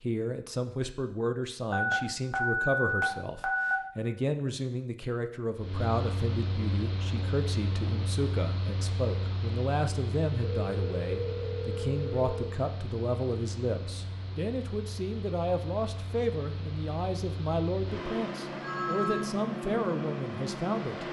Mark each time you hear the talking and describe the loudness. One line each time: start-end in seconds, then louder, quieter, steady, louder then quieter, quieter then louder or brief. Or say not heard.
0.0-21.0 steady.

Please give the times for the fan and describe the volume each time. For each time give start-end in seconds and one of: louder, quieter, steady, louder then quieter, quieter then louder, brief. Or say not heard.
5.5-21.0 quieter then louder.